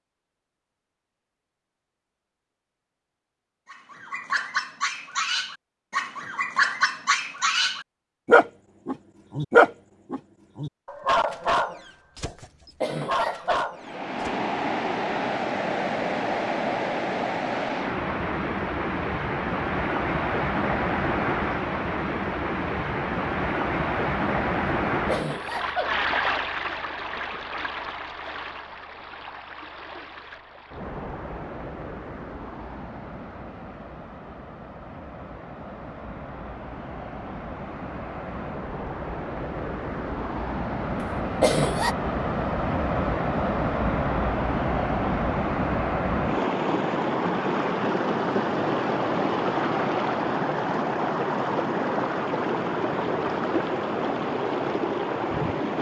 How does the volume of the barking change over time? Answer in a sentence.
The loudness of the barking goes up, then down.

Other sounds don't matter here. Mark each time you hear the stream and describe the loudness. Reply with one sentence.
You can hear the stream from 13.8 to 55.7 s, getting quieter then louder.